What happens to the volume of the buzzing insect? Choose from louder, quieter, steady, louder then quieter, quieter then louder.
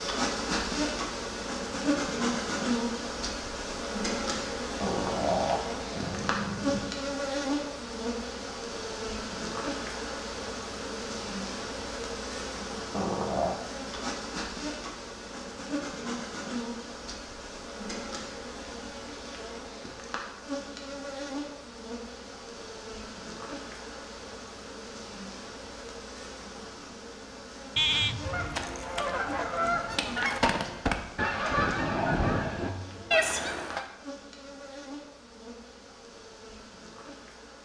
quieter.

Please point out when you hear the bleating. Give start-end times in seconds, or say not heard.
27.8-28.6.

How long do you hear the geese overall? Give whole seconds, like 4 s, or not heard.
6 s.